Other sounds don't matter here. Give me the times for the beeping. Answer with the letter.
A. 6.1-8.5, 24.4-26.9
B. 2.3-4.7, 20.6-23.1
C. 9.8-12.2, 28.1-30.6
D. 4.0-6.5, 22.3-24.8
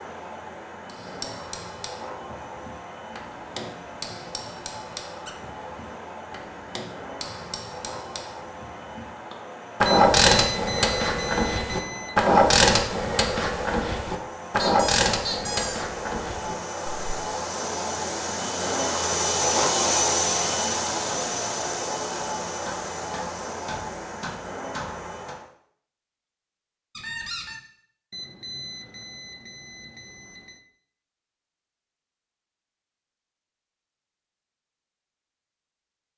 C.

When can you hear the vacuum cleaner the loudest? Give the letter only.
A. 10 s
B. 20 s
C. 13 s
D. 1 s
B.